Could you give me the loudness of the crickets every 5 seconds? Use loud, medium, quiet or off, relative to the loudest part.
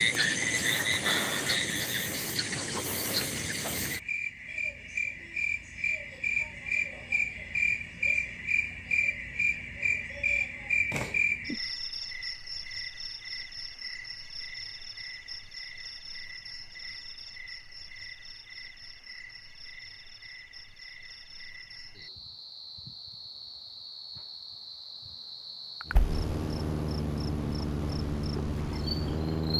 loud, loud, loud, quiet, quiet, medium.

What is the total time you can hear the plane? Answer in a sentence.
The plane can be heard for 4 seconds in total.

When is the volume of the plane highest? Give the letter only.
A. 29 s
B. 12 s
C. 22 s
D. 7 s
A.